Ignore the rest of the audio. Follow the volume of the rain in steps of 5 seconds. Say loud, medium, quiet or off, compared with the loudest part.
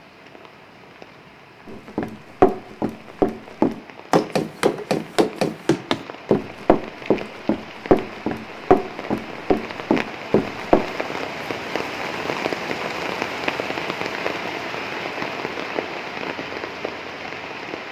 quiet, medium, loud, loud.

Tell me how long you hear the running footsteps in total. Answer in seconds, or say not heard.
9 s.